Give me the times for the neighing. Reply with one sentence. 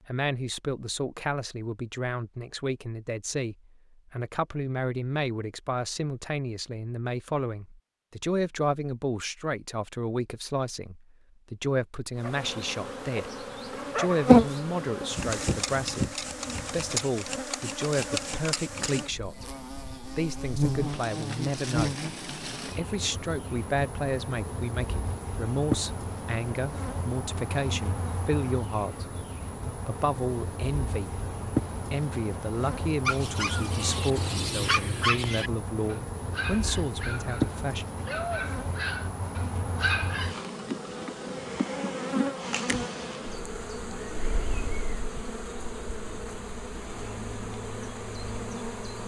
The neighing can't be heard in this clip.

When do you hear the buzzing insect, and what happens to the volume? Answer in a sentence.
You can hear the buzzing insect from 12.2 to 49.0 s, getting quieter.